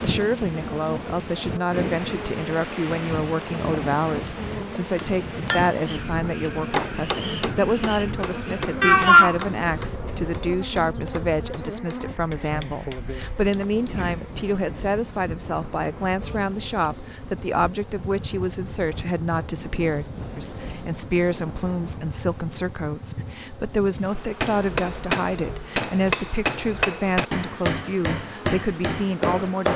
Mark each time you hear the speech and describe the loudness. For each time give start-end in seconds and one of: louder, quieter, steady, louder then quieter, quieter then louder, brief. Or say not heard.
0.0-29.7 steady.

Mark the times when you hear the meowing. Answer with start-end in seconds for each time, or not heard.
8.8-9.8.